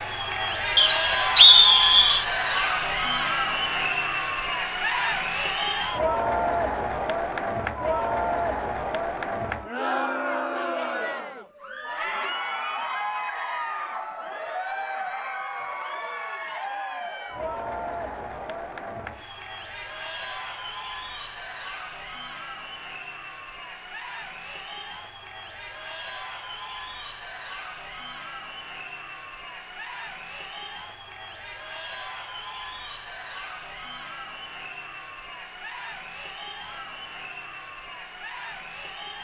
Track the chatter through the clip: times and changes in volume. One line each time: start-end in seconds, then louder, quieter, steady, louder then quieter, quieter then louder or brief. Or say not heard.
0.0-39.1 quieter.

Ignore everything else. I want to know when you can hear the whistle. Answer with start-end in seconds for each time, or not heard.
0.8-2.2.